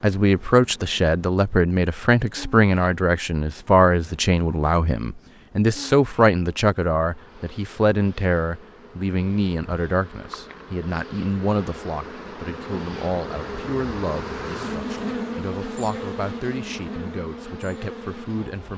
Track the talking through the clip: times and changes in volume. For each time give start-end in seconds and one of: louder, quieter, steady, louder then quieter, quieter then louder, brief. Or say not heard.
0.0-18.7 quieter.